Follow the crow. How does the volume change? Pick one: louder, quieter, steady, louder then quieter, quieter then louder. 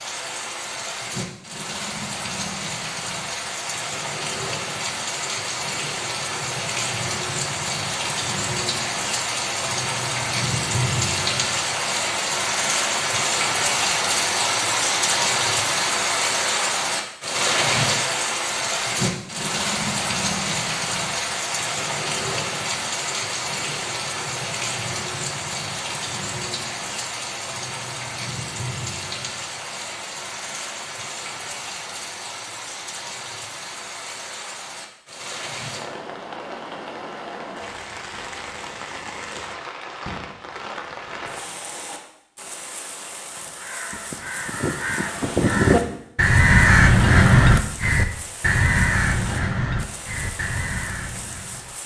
louder then quieter.